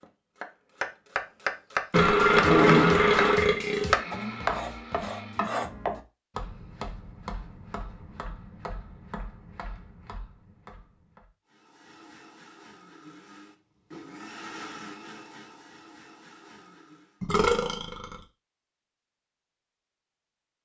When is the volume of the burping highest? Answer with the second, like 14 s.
3 s.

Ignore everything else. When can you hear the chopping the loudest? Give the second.
4 s.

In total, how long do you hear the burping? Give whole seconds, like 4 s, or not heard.
3 s.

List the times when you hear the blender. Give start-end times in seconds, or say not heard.
3.5-5.5, 11.4-17.2.